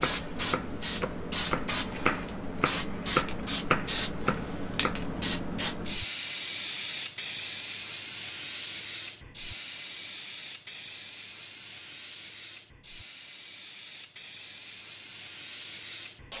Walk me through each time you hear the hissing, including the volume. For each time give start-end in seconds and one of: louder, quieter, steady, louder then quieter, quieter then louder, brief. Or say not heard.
0.0-16.3 quieter.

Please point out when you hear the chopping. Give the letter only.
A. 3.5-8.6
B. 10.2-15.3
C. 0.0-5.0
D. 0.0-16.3
C.